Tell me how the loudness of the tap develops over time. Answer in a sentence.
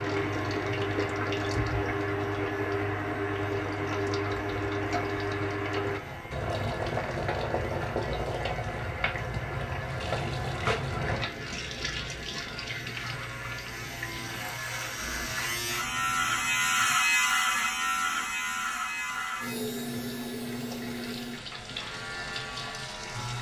The volume of the tap goes down.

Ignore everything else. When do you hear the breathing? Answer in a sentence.
The breathing can't be heard in this clip.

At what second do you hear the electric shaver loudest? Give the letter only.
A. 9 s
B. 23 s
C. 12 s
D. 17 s
D.